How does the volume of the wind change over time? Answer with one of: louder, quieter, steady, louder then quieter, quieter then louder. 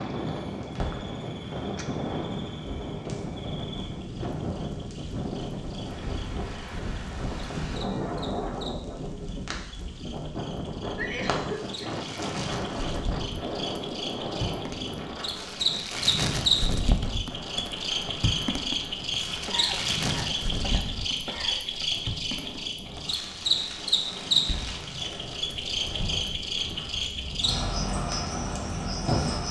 quieter.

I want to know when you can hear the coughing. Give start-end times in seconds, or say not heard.
10.9-12.0, 19.4-21.9.